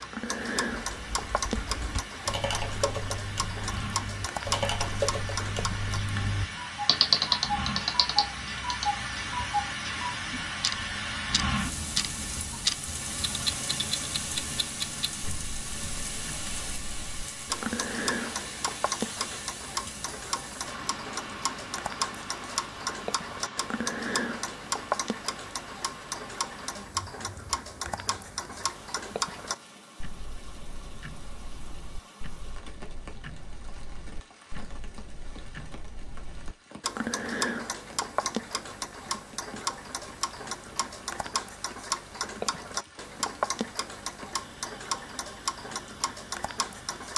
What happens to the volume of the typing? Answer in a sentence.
The loudness of the typing goes down, then up.